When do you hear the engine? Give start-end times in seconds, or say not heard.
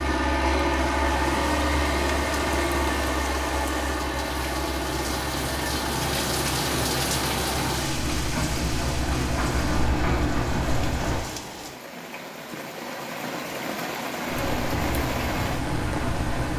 0.0-11.2, 14.2-16.5.